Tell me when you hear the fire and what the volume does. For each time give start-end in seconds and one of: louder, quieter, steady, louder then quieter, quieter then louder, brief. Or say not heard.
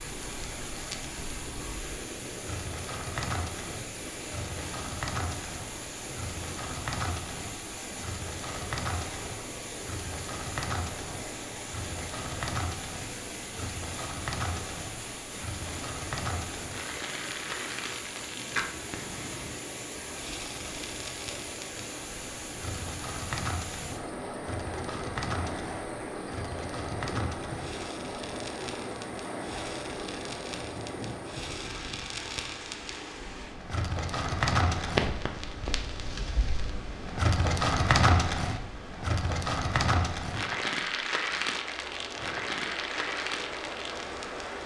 0.1-44.6 louder.